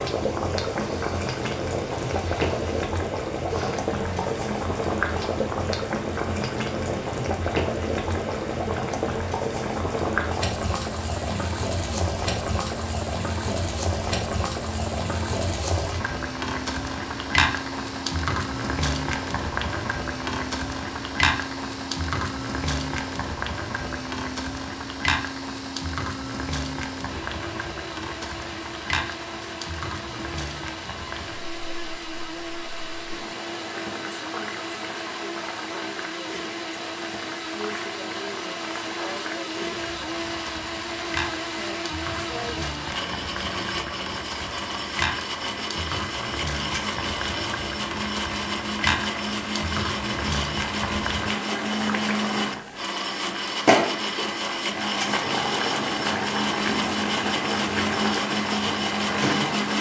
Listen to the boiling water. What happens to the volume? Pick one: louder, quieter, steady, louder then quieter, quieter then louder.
quieter then louder.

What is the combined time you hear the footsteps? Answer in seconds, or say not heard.
not heard.